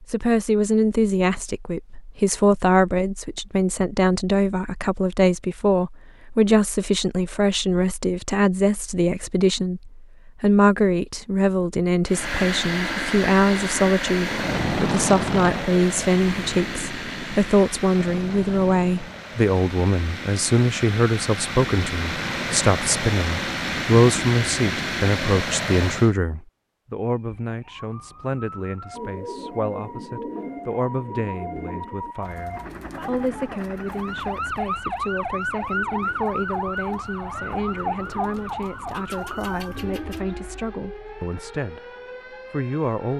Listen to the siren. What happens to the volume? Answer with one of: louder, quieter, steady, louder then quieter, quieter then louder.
louder then quieter.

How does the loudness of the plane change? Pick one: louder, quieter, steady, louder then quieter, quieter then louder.
quieter then louder.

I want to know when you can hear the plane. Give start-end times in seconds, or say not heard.
12.1-26.1.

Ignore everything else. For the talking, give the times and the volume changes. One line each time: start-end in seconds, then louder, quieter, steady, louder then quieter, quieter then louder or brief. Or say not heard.
0.0-41.8 quieter
42.5-43.1 brief.